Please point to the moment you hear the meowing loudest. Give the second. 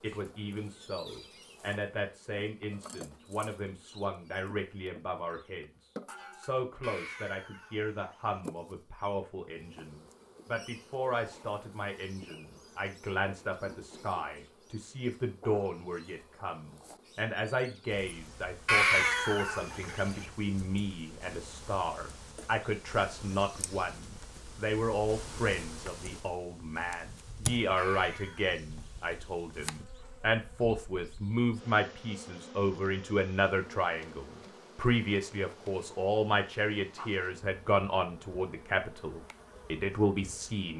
19 s.